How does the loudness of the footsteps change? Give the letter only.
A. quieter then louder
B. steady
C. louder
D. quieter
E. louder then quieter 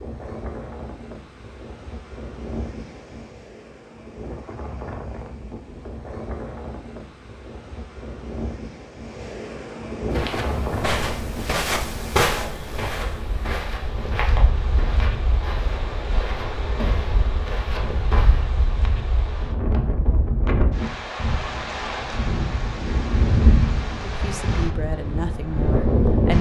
D.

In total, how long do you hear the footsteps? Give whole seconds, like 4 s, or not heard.
8 s.